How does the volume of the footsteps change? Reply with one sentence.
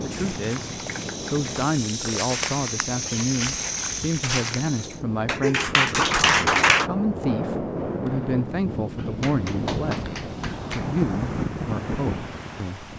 The volume of the footsteps goes up.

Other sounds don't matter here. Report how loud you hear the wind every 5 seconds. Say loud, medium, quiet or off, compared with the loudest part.
medium, loud, loud.